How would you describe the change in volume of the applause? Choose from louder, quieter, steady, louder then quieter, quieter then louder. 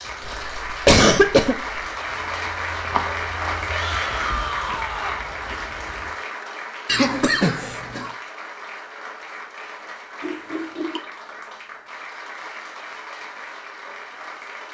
quieter.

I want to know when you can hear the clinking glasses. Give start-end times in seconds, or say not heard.
not heard.